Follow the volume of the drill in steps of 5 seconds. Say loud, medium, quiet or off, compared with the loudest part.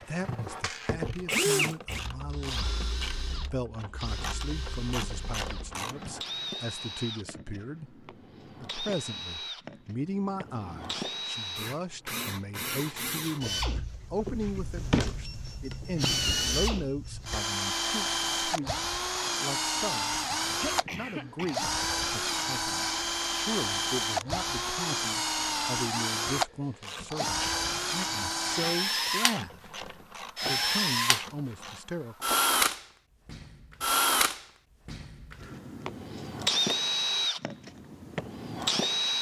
medium, quiet, medium, loud, loud, loud, loud, loud.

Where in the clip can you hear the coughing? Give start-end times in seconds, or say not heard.
20.1-21.8.